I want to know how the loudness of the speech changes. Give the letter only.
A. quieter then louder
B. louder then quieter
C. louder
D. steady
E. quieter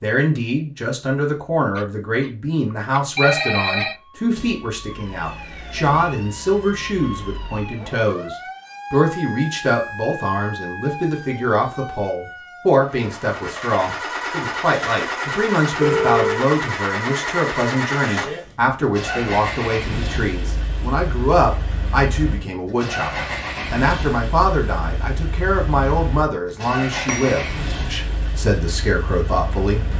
D.